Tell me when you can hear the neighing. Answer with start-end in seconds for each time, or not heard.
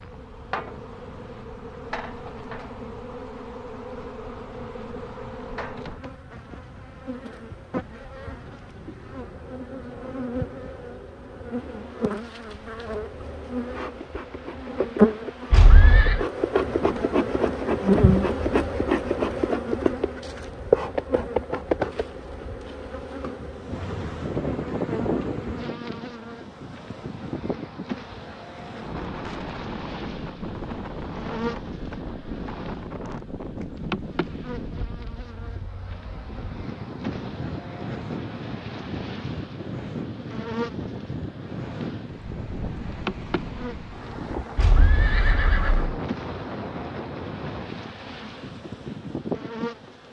15.5-16.2, 44.5-46.0.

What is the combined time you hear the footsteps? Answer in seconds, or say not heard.
not heard.